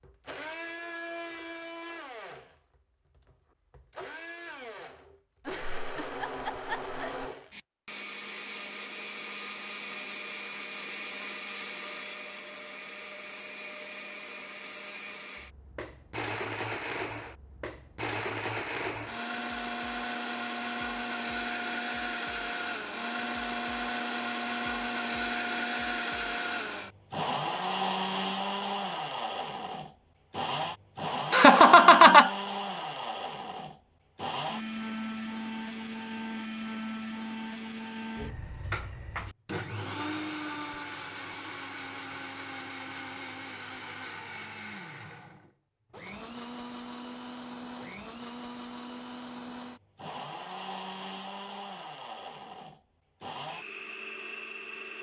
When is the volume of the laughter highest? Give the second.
32 s.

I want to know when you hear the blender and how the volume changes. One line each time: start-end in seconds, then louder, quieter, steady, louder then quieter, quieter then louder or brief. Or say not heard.
0.0-54.9 louder then quieter.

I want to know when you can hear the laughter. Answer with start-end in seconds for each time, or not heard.
5.5-7.2, 31.3-32.3.